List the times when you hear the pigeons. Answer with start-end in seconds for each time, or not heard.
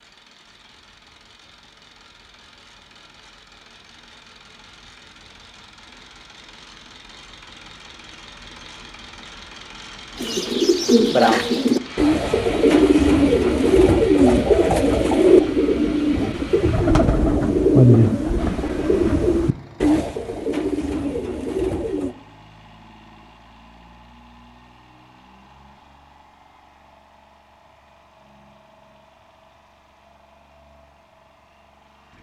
10.2-22.1.